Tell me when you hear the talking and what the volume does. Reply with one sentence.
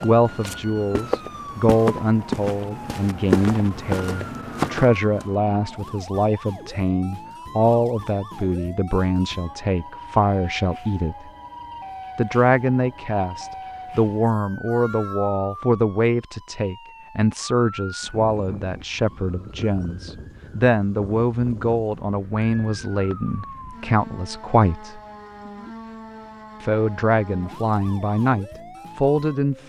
You can hear the talking from 0.0 to 11.2 s, at a steady volume; from 12.2 to 25.0 s, at a steady volume; and briefly from 26.6 to 29.6 s.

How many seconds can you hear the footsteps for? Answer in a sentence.
The footsteps can be heard for 5 seconds in total.